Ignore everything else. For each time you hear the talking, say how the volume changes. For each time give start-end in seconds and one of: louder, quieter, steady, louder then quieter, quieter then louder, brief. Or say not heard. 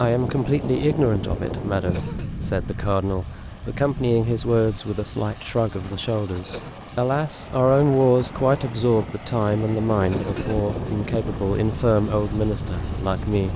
0.0-13.5 steady.